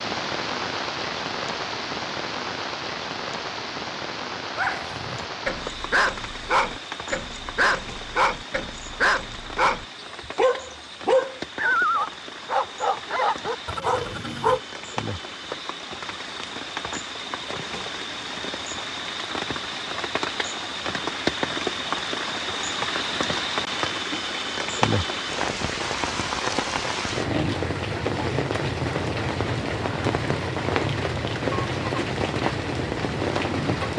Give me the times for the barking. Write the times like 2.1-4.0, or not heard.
4.5-14.6.